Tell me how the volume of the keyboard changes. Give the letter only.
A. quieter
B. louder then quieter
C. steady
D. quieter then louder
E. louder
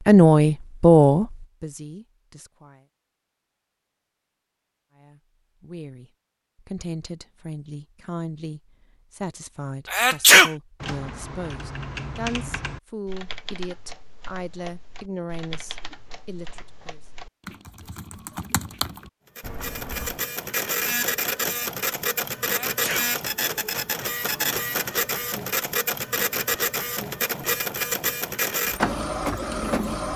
D.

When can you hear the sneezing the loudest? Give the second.
10 s.